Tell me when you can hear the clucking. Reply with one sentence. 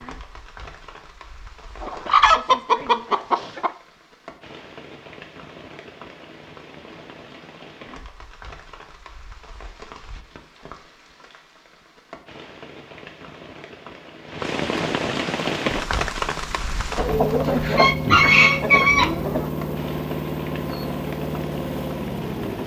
The clucking can be heard from 1.8 to 3.7 s and from 16.9 to 19.4 s.